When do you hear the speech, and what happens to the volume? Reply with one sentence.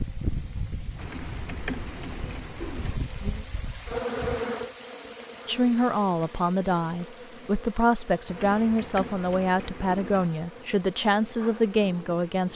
The speech can be heard from 5.5 to 12.5 s, at a steady volume.